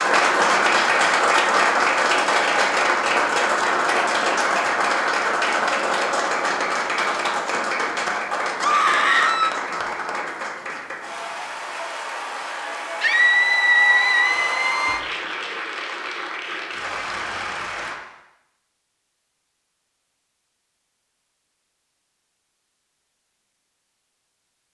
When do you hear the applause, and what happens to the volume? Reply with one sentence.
You can hear the applause from 0.0 to 18.0 s, getting quieter.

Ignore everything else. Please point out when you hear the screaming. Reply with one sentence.
You can hear the screaming from 8.6 to 9.6 s and from 13.0 to 15.0 s.